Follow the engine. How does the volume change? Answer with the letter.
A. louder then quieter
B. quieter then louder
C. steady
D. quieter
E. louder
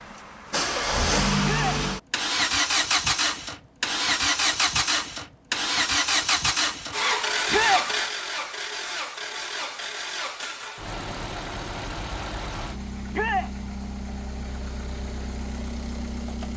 D.